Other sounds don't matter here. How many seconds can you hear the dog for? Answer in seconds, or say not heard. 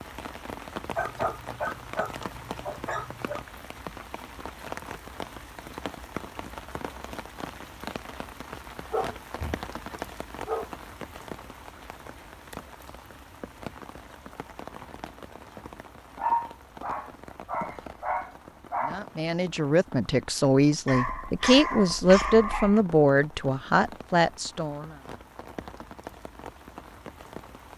9 s.